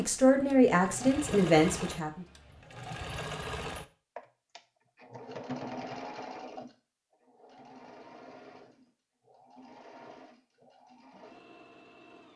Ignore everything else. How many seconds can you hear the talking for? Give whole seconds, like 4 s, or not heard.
2 s.